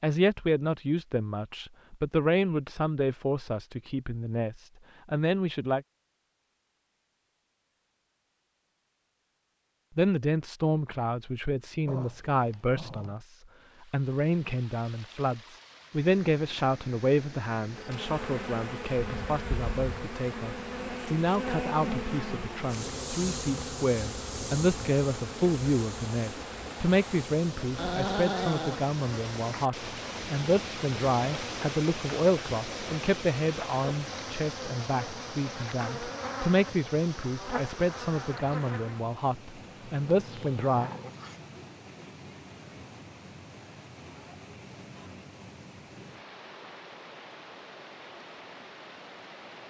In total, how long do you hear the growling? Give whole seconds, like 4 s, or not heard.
4 s.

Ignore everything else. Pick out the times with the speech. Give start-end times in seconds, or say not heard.
0.0-5.8, 9.9-40.9.